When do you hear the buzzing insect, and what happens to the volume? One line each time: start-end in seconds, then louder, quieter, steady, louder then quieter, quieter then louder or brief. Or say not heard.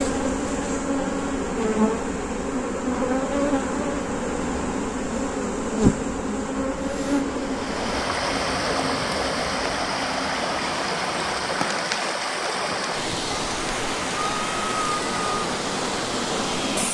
0.0-16.9 quieter.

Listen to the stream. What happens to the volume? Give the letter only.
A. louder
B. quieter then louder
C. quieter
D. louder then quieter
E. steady
E.